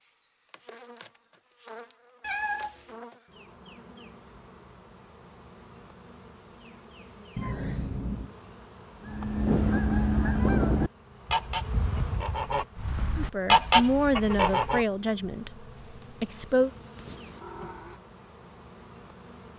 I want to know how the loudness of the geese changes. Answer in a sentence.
The volume of the geese goes down, then up.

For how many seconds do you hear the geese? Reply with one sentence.
The geese can be heard for 6 seconds in total.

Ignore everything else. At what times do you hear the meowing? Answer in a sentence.
The meowing can be heard from 2.2 to 3.0 s, from 7.3 to 8.3 s and from 16.9 to 17.7 s.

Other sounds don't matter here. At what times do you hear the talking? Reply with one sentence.
You can hear the talking from 13.2 to 16.7 s.